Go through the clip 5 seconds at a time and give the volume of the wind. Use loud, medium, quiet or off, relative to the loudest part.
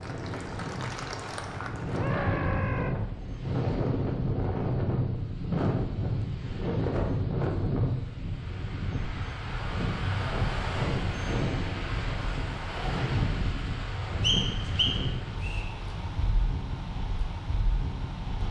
loud, loud, loud, medium.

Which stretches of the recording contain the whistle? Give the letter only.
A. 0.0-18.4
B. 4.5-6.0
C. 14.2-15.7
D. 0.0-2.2
C.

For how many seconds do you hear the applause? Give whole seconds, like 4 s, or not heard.
2 s.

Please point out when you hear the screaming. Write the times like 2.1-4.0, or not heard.
1.9-3.0.